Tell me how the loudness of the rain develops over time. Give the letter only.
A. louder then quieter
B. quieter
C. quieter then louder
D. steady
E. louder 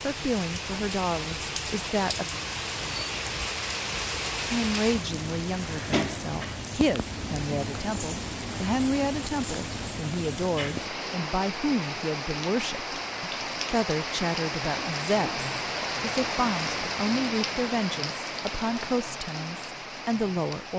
D.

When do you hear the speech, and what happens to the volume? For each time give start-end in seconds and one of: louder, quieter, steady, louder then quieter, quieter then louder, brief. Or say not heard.
0.0-2.2 brief
4.5-20.7 steady.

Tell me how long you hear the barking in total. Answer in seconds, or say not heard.
not heard.